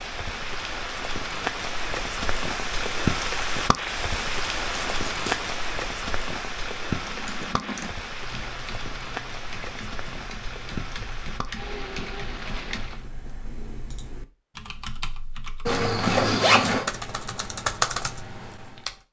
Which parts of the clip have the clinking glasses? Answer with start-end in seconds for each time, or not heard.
not heard.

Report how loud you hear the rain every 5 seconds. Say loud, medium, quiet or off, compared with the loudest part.
loud, loud, medium, off.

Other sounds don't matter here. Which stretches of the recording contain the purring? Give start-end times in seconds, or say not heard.
not heard.